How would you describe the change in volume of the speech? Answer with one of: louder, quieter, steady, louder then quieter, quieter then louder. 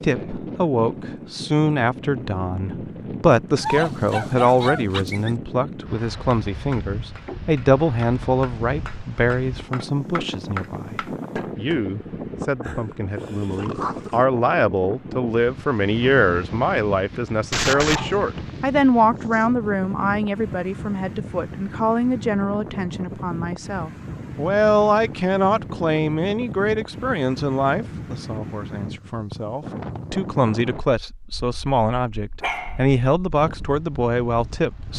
steady.